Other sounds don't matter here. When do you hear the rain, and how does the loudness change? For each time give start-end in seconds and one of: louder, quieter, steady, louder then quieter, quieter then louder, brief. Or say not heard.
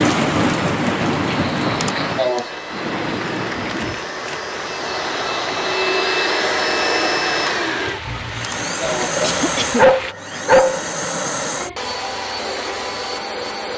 0.0-10.2 quieter then louder.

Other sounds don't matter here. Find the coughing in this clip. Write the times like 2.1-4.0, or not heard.
1.8-2.5, 8.4-10.4.